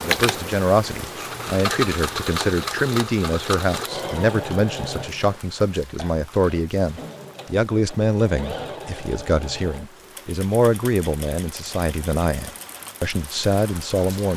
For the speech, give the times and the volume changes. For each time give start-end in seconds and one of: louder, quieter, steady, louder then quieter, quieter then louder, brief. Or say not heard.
0.0-14.3 steady.